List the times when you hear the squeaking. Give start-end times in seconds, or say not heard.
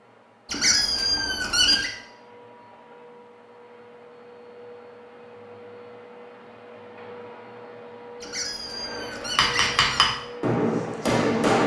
0.5-1.9, 8.2-10.0.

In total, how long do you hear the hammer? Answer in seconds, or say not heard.
2 s.